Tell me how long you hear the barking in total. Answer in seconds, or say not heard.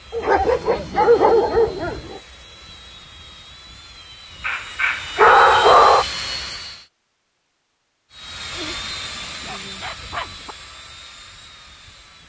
6 s.